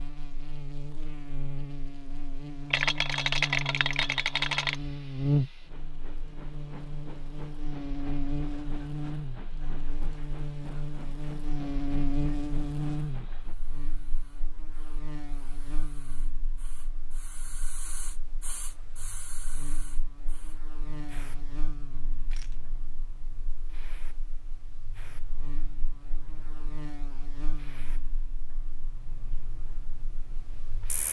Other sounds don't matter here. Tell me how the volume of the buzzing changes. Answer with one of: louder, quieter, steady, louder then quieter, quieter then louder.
quieter.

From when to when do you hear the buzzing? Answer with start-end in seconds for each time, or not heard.
0.0-31.0.